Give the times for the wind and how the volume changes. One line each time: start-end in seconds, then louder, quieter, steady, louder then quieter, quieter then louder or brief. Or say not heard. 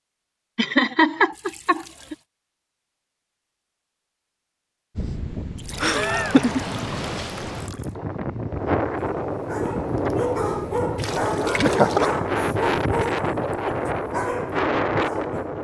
5.0-15.5 louder.